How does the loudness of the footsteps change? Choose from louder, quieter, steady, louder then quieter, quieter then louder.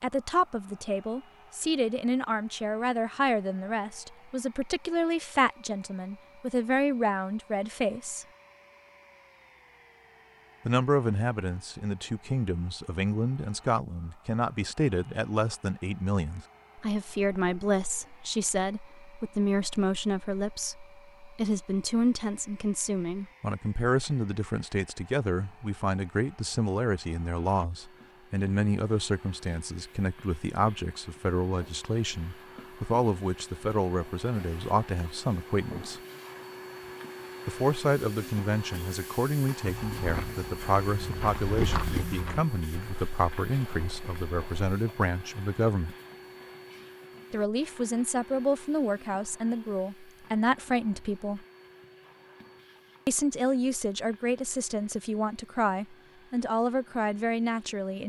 louder then quieter.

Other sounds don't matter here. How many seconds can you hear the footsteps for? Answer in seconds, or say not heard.
5 s.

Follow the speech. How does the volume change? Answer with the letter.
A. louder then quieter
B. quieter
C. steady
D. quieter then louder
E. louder
C.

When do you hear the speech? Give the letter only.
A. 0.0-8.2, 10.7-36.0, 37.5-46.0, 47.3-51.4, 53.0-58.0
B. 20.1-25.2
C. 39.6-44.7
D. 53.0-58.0
A.